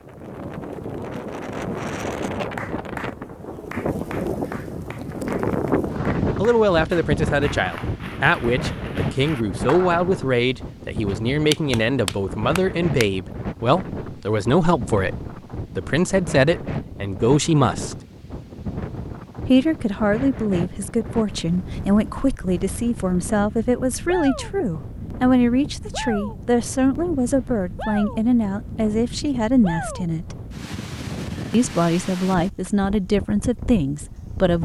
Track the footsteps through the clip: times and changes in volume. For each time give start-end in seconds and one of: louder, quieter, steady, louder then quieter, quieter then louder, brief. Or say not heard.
not heard.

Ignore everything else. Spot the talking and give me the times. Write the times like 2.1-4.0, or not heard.
6.3-15.2, 15.8-17.9, 19.4-30.4, 31.5-34.6.